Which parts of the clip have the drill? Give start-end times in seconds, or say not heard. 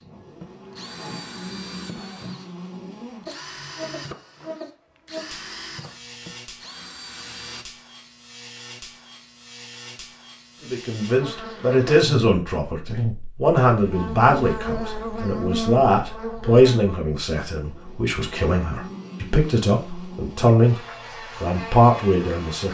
0.0-7.7.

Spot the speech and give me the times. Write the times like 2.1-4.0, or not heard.
10.6-20.8, 21.4-22.7.